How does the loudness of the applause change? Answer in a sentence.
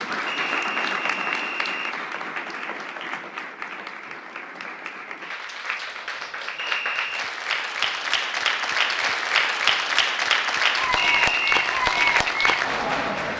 The volume of the applause goes down, then up.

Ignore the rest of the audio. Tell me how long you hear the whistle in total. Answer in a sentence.
You can hear the whistle for 3 seconds altogether.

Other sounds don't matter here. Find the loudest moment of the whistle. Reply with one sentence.
The volume of the whistle peaks at 11 seconds.